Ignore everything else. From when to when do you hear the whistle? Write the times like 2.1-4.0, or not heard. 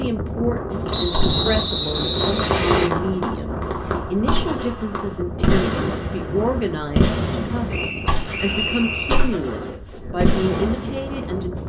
0.9-2.9, 7.7-9.3.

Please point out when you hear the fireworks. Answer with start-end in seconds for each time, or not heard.
0.7-11.2.